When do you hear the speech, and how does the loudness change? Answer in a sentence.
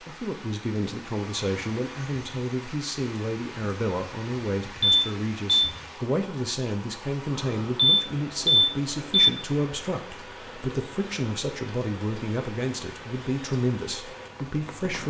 The speech can be heard from 0.1 to 15.0 s, at a steady volume.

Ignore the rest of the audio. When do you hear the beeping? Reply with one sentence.
You can hear the beeping from 4.8 to 5.8 s and from 7.8 to 9.3 s.